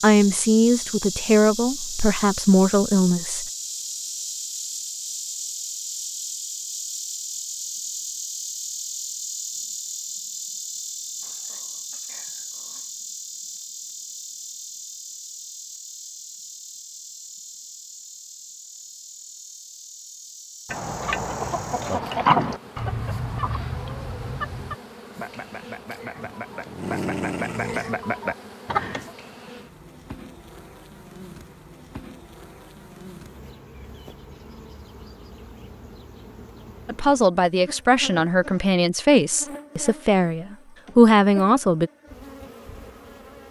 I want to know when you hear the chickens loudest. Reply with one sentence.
The loudest moment of the chickens is at 22 seconds.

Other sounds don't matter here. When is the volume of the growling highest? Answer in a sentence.
The loudest moment of the growling is at 27 seconds.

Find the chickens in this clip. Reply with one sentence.
You can hear the chickens from 20.7 to 29.1 s.